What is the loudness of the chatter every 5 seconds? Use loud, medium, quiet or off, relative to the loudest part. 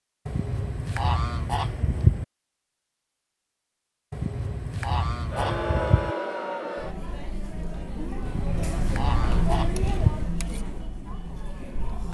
off, loud, medium.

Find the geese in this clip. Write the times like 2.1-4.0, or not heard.
0.2-2.2, 4.1-6.2, 8.2-10.2.